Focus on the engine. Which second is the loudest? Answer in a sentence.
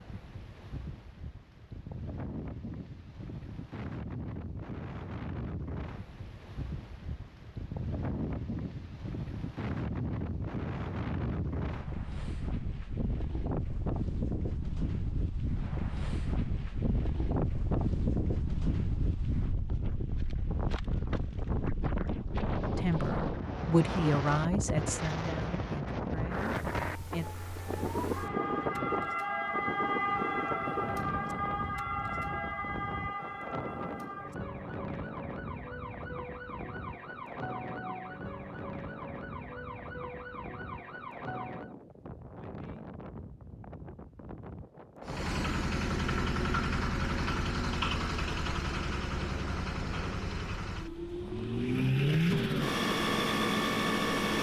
The volume of the engine peaks at 52 seconds.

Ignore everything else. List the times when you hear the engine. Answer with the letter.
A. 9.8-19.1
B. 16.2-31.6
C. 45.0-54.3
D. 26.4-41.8
C.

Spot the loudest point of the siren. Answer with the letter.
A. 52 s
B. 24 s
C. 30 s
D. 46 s
C.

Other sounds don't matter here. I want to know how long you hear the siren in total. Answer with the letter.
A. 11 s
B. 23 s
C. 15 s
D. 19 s
C.